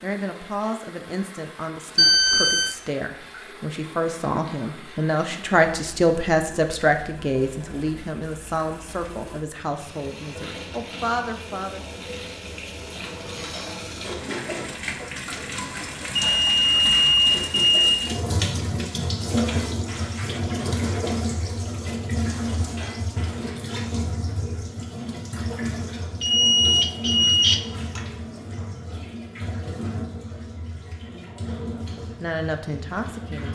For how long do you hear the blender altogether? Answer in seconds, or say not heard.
not heard.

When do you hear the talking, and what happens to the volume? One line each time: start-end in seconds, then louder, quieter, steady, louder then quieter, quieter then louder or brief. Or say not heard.
0.0-11.8 louder then quieter
32.2-33.4 brief.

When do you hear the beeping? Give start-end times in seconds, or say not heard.
1.9-2.8, 16.1-17.9, 26.2-28.0.